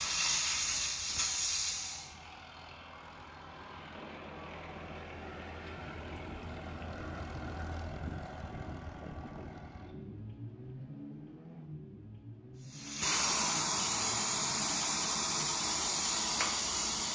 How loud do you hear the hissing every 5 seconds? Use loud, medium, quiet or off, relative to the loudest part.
loud, off, loud, loud.